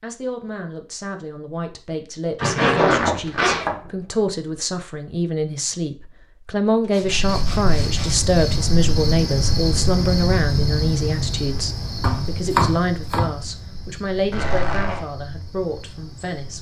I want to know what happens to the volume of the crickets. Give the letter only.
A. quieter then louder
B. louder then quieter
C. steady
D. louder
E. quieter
E.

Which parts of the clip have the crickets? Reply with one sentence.
You can hear the crickets from 7.0 to 16.5 s.